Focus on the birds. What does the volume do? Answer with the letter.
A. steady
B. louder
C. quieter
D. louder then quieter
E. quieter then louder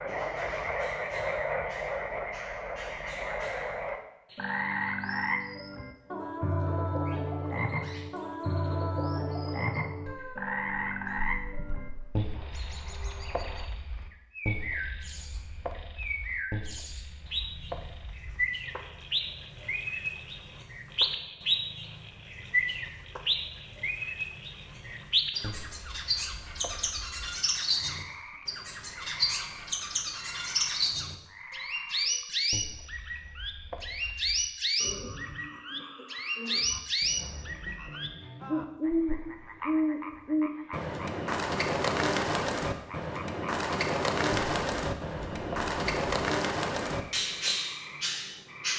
B.